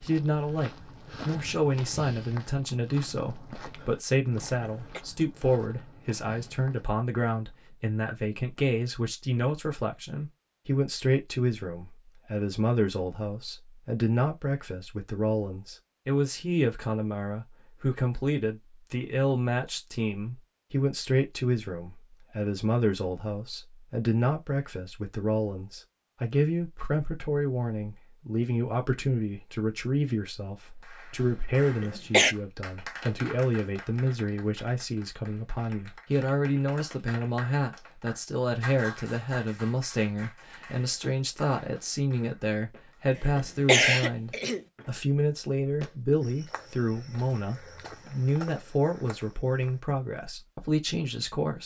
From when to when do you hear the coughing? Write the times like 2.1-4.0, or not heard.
4.5-5.0, 31.8-32.4, 43.4-44.6.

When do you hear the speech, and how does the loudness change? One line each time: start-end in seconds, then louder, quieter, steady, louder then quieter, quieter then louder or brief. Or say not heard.
0.0-51.6 steady.